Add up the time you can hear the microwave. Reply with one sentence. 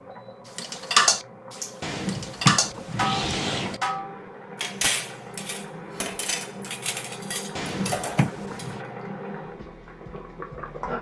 You can't hear the microwave here.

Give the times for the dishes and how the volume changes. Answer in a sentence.
You can hear the dishes from 0.6 to 8.8 s, getting quieter.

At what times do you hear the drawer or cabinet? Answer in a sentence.
You can hear the drawer or cabinet from 1.8 to 3.8 s and from 7.5 to 8.8 s.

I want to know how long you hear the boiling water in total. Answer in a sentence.
You can hear the boiling water for 11 seconds altogether.